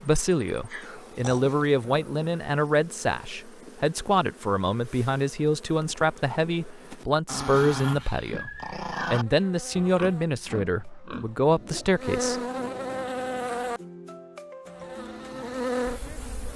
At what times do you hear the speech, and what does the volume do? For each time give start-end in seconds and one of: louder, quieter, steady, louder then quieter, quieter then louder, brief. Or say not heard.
0.0-12.4 steady.